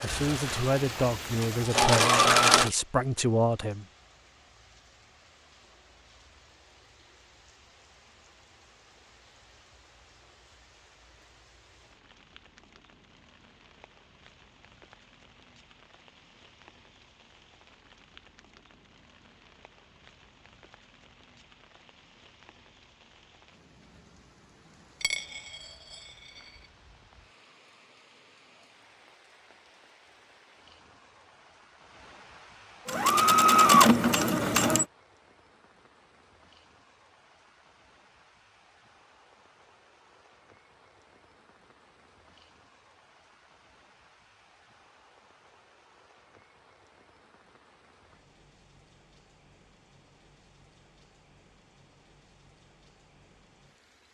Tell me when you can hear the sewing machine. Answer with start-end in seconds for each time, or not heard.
0.0-2.7, 32.9-34.9.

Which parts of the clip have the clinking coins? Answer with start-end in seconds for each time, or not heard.
25.0-26.6.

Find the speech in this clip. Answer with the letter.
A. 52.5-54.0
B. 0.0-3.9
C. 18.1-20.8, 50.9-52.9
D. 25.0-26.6
B.